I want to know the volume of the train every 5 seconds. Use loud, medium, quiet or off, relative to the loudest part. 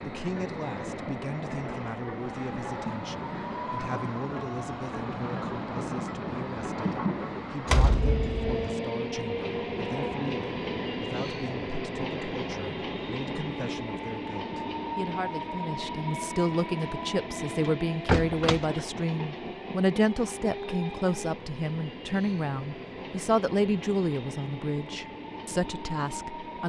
loud, loud, loud, loud, medium, medium.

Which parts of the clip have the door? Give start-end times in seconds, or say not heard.
7.7-8.7, 17.6-18.9.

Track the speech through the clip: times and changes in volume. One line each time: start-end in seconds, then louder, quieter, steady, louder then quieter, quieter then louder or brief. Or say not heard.
0.0-26.6 louder.